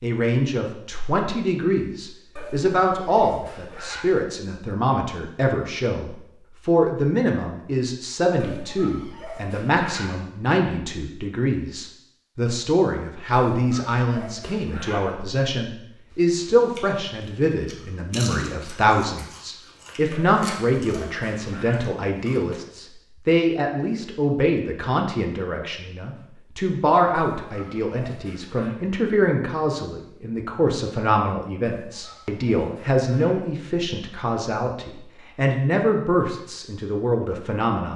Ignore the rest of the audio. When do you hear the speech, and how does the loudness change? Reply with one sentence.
The speech can be heard from 0.0 to 37.9 s, at a steady volume.